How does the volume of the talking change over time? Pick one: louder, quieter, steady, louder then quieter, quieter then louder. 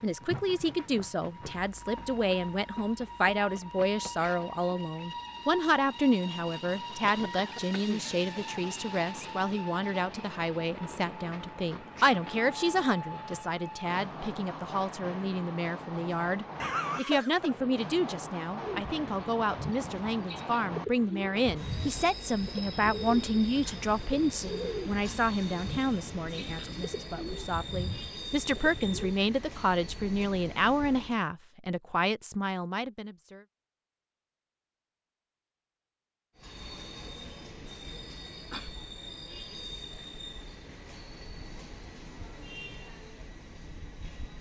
steady.